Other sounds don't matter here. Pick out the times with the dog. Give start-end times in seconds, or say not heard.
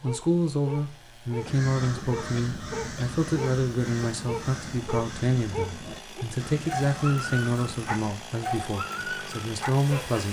0.0-10.2.